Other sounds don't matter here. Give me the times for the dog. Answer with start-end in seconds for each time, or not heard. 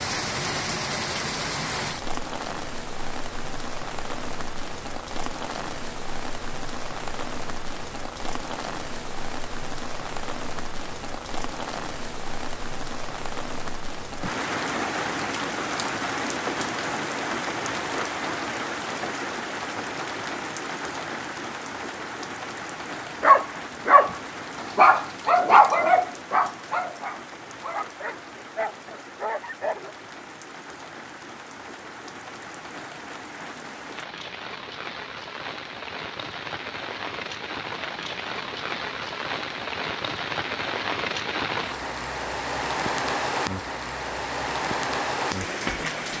23.2-29.9.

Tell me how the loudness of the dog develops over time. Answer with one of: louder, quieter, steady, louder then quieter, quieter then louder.
quieter.